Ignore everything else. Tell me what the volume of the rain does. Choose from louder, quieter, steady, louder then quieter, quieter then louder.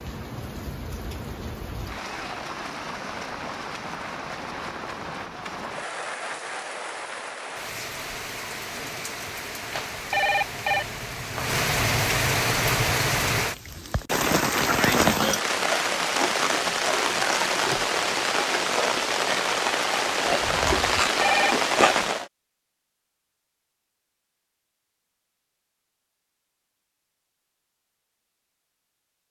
louder.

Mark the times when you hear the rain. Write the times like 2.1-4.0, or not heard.
0.0-22.3.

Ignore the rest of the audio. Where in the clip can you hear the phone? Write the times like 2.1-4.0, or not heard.
9.7-10.8, 21.1-21.6.